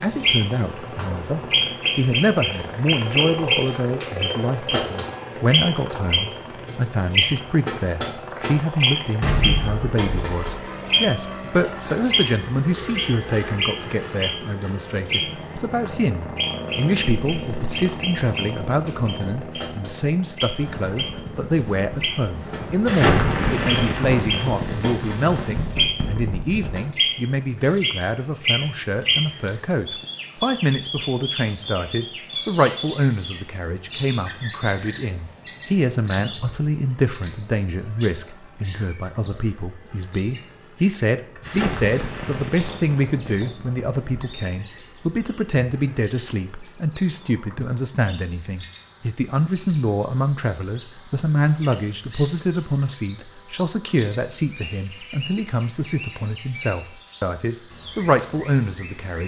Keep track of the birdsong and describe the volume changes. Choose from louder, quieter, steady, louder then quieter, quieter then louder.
quieter.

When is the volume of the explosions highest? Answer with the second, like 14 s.
23 s.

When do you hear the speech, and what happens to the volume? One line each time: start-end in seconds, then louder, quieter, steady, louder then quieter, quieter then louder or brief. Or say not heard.
0.0-59.2 steady.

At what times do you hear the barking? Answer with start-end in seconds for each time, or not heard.
not heard.